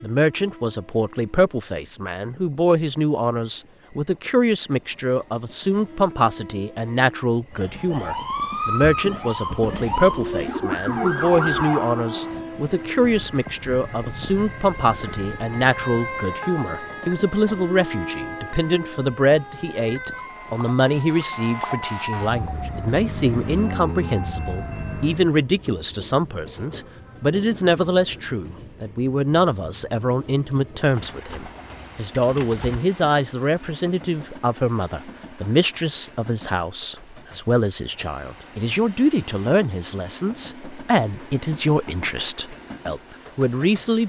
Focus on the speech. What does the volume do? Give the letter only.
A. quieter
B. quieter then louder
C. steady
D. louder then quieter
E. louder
C.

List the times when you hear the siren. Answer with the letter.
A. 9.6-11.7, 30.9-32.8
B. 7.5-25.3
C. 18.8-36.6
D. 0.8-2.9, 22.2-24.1
B.